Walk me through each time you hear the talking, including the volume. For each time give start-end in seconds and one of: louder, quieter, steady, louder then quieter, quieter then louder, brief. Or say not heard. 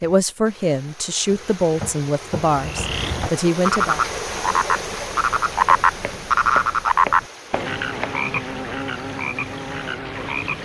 0.0-4.0 steady.